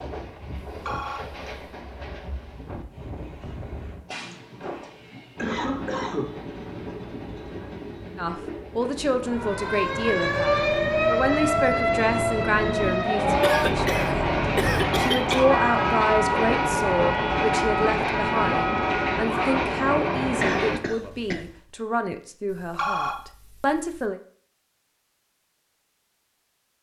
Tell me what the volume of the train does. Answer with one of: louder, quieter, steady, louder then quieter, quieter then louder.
louder.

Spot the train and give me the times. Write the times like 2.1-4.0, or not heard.
0.0-20.8.